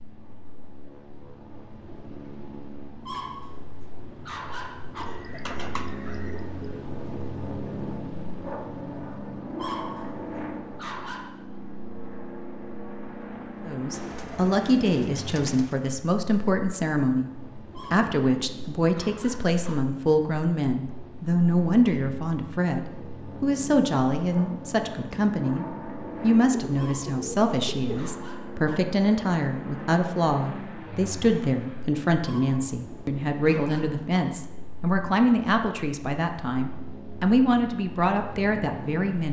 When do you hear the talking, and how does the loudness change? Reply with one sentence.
The talking can be heard from 13.7 to 39.2 s, at a steady volume.